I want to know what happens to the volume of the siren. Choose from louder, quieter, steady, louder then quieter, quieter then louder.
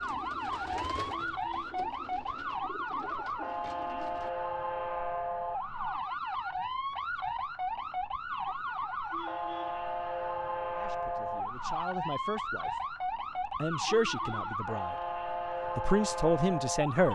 steady.